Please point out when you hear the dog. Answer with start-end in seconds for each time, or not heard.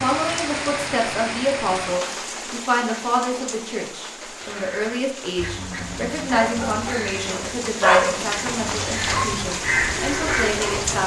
6.3-11.0.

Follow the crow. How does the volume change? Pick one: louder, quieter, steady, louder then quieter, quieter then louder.
louder.